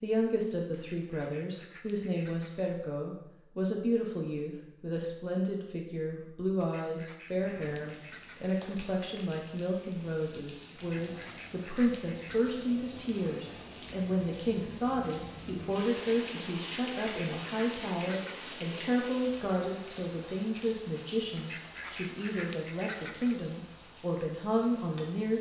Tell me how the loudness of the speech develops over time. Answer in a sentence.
The volume of the speech stays about the same.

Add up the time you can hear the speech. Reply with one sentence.
The speech can be heard for 25 seconds in total.